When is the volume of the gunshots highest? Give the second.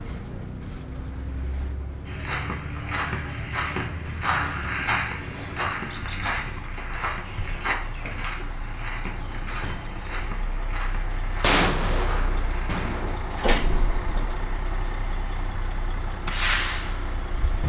12 s.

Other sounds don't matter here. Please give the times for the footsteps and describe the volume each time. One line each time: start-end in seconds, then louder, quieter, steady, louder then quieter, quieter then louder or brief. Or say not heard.
2.0-13.0 quieter.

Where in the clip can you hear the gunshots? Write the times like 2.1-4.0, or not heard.
11.4-13.2.